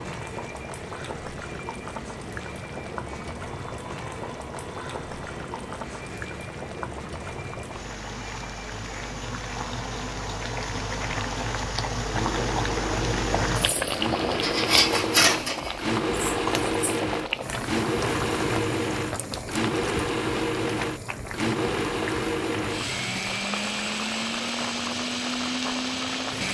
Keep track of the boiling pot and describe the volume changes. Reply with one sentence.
The volume of the boiling pot goes up, then down.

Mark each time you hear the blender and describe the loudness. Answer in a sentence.
The blender can be heard from 0.0 to 26.4 s, getting louder.